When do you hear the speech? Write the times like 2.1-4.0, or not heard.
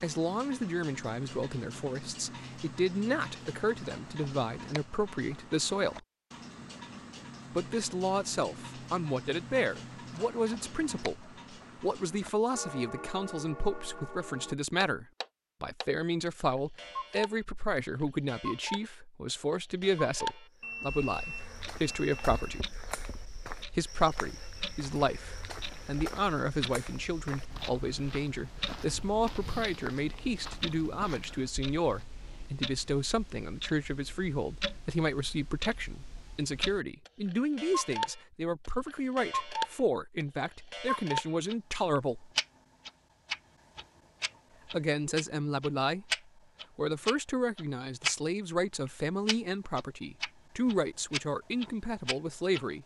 0.0-6.0, 7.5-22.6, 23.8-42.3, 44.7-46.1, 46.8-52.8.